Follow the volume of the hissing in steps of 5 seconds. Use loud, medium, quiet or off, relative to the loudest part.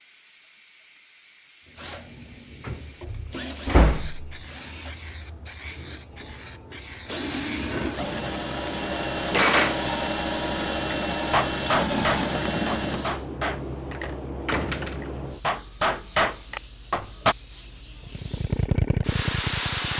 medium, medium, loud, loud.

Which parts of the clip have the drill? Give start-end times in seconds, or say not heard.
1.6-13.2, 18.0-19.9.